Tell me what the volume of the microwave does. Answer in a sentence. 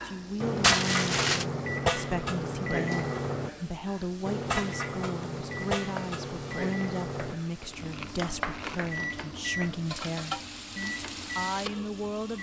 The loudness of the microwave goes down.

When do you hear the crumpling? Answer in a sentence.
The crumpling can be heard from 0.6 to 1.4 s and from 7.6 to 9.1 s.